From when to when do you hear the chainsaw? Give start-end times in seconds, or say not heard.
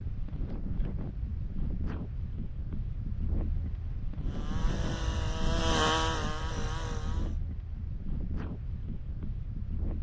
4.2-7.4.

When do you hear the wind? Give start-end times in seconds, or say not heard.
0.0-9.9.